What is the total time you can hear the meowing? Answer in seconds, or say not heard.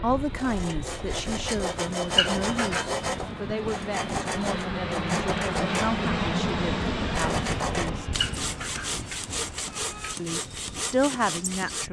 3 s.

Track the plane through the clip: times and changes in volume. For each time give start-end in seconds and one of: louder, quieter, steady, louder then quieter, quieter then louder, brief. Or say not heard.
0.0-11.8 louder then quieter.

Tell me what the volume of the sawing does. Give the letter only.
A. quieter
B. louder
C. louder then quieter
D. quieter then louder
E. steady
E.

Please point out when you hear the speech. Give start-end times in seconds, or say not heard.
0.0-8.1, 10.2-11.8.